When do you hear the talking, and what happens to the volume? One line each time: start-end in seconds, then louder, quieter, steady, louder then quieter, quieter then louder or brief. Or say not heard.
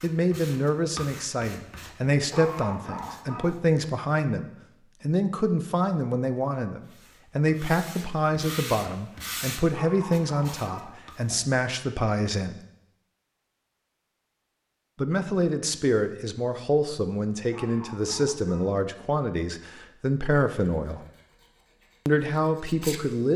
0.0-12.6 steady
14.9-21.1 steady
22.1-23.3 brief.